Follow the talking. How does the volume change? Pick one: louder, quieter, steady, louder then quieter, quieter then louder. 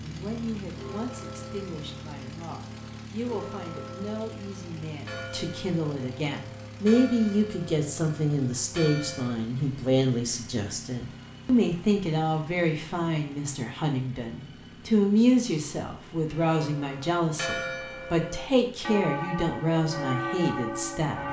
louder.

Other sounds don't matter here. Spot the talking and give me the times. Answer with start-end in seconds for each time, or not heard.
0.0-21.2.